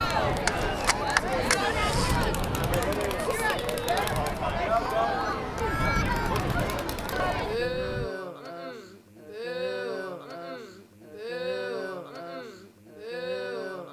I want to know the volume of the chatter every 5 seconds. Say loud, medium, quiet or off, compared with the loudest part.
loud, loud, medium.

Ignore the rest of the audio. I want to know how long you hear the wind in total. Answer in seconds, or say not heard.
8 s.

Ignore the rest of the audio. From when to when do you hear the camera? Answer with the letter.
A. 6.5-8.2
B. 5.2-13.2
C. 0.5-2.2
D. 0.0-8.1
C.